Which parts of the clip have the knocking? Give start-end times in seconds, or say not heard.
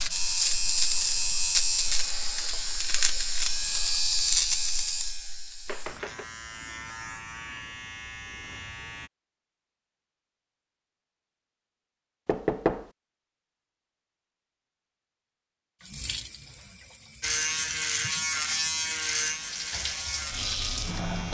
5.7-6.2, 12.2-12.9.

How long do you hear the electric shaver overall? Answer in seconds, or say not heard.
13 s.